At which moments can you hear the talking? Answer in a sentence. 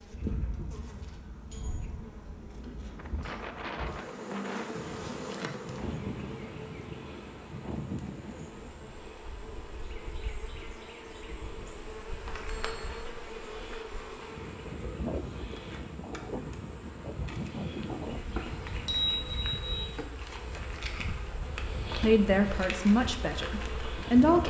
The talking can be heard from 21.9 to 24.4 s.